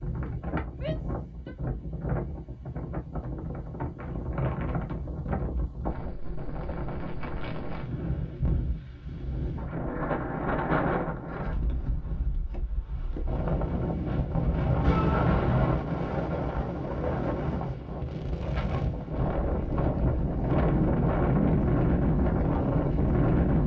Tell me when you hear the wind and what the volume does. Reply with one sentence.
The wind can be heard from 0.0 to 23.6 s, getting louder.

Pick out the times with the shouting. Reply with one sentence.
The shouting can be heard from 0.7 to 1.6 s and from 14.8 to 15.3 s.